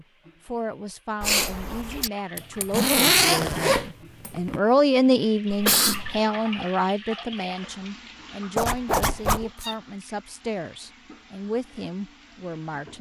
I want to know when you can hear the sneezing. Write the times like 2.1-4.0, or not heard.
1.2-2.1, 5.5-6.2, 9.4-9.8.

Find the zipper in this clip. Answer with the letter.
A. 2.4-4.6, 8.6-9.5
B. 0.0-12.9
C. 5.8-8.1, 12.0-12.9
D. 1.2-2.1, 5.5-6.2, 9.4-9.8
A.